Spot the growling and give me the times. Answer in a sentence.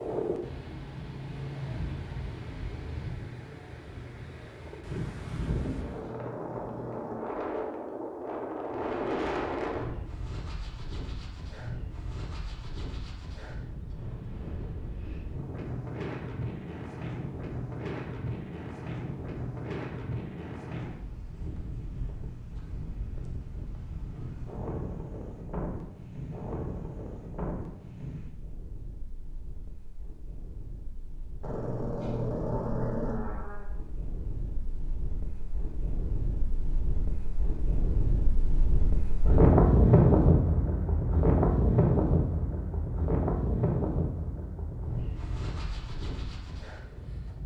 You can hear the growling from 5.5 to 7.5 s and from 31.4 to 33.6 s.